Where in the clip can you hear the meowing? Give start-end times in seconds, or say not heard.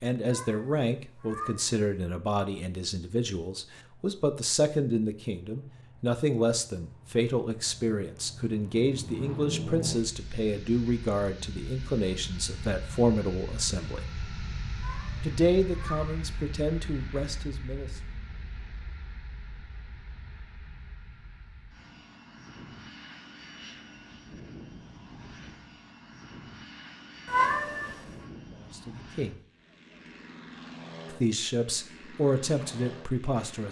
0.2-1.6, 14.8-16.1, 27.2-27.9.